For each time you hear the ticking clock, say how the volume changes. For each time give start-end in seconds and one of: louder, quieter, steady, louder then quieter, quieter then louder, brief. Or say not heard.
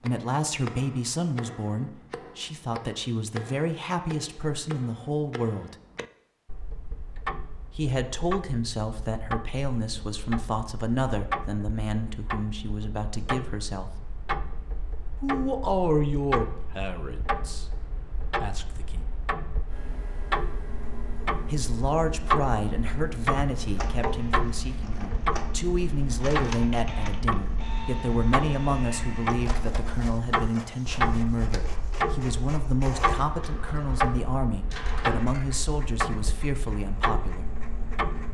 0.0-38.2 louder.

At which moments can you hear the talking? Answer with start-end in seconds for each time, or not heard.
0.0-5.8, 7.8-14.0, 15.2-19.1, 21.4-37.5.